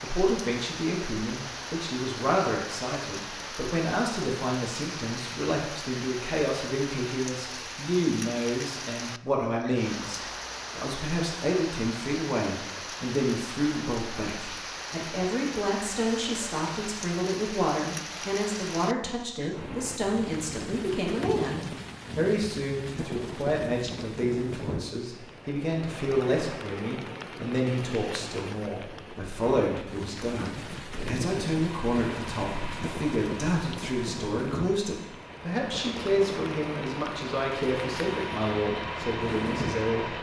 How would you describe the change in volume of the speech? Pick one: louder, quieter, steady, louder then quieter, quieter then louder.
steady.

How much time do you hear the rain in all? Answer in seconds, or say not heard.
40 s.